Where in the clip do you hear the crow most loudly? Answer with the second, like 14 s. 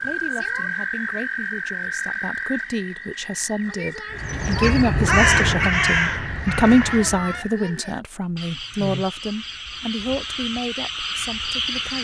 5 s.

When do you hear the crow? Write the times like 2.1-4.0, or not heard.
4.2-7.4.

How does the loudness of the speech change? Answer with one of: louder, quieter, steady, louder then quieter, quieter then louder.
louder then quieter.